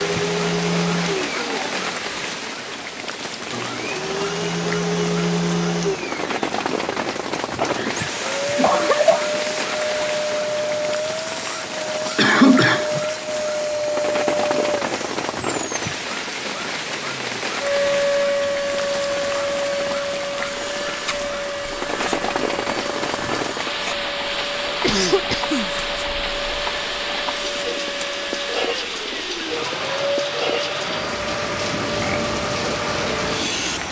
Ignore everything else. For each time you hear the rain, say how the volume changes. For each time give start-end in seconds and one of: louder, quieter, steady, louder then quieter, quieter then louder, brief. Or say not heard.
0.0-33.8 steady.